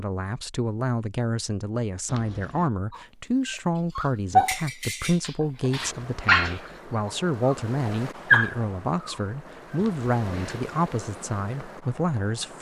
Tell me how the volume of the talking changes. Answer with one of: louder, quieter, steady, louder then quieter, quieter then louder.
steady.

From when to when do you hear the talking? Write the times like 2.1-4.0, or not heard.
0.0-12.5.